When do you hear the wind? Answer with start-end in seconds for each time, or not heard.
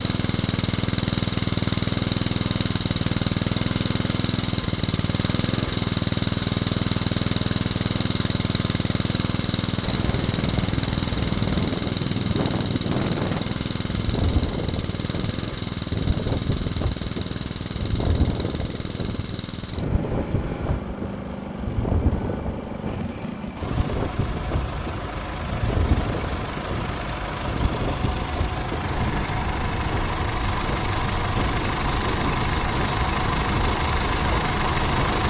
9.8-35.2.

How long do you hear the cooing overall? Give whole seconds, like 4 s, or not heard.
not heard.